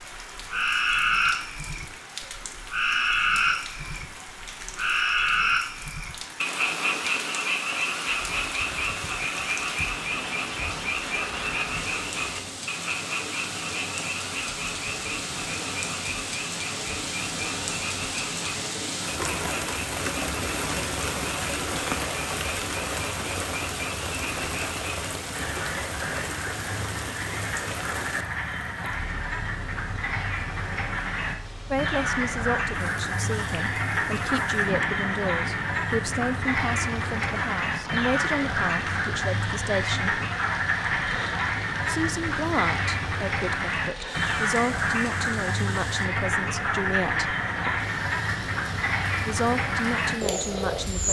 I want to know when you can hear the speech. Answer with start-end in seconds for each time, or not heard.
31.7-40.2, 41.9-47.3, 49.1-51.0.